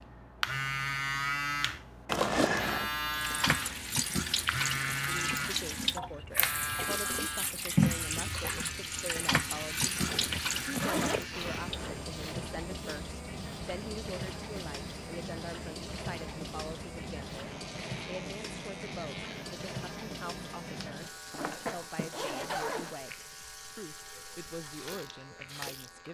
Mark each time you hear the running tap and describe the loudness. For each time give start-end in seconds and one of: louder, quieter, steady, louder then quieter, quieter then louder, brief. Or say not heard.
3.1-26.1 quieter.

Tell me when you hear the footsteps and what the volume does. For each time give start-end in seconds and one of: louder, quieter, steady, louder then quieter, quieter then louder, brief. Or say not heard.
not heard.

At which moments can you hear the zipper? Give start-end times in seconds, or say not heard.
2.0-2.9, 10.1-12.1, 21.3-22.9.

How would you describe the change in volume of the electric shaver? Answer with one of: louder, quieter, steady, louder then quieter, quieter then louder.
quieter.